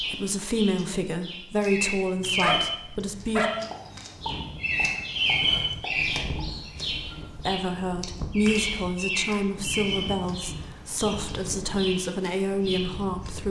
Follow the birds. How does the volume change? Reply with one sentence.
The loudness of the birds goes down.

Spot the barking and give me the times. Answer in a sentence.
You can hear the barking from 2.2 to 4.0 s.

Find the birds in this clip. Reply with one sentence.
The birds can be heard from 0.0 to 13.4 s.